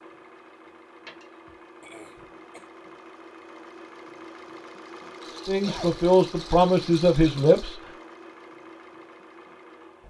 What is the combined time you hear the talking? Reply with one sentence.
The talking can be heard for 2 seconds in total.